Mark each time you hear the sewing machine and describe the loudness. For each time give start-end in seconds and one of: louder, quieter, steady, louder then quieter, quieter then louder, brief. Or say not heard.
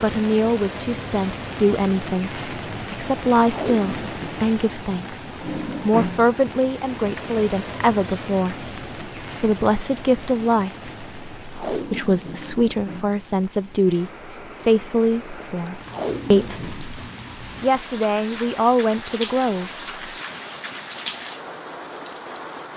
not heard.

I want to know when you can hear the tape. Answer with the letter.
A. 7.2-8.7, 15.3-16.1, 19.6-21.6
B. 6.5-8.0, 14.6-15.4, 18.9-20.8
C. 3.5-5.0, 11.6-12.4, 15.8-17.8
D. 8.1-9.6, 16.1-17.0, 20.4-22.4
C.